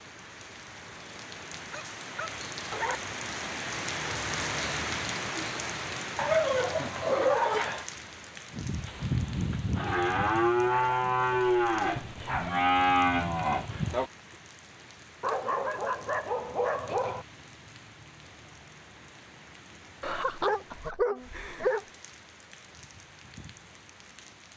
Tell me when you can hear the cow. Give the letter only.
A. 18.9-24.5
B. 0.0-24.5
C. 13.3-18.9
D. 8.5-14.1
D.